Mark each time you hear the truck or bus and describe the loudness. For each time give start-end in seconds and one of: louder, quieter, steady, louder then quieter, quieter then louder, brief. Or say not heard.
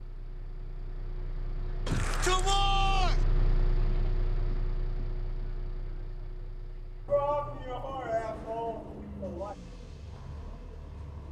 0.0-11.2 louder then quieter.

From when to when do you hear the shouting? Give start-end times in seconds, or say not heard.
1.9-3.2, 7.0-9.6.